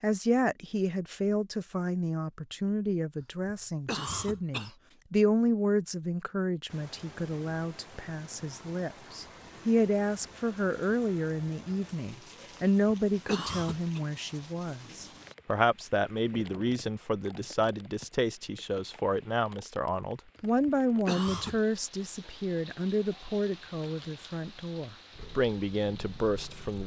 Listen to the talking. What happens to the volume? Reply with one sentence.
The volume of the talking stays about the same.